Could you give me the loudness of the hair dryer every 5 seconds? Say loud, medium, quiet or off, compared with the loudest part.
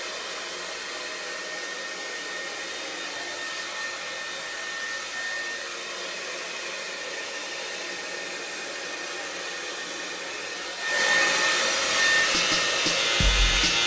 medium, medium, loud.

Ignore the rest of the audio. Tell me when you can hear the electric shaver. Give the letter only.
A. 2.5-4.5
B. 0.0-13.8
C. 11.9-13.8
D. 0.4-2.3
C.